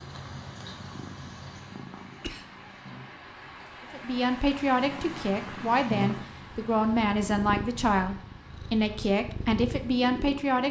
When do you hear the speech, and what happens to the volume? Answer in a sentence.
You can hear the speech from 3.9 to 10.6 s, at a steady volume.